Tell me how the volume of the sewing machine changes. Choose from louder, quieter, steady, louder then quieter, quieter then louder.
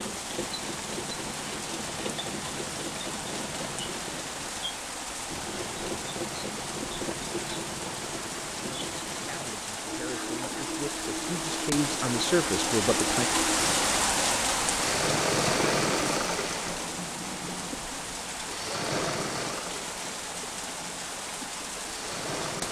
louder then quieter.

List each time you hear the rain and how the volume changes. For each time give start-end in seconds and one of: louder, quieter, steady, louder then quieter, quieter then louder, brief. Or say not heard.
0.0-22.6 louder then quieter.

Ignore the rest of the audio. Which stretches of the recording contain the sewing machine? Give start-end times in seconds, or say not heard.
0.0-22.6.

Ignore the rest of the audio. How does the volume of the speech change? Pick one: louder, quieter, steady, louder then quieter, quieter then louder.
louder.